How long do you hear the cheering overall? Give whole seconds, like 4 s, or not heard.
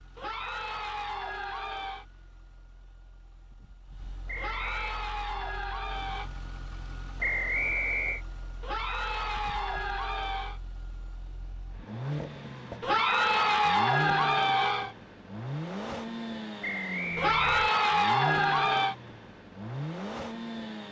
10 s.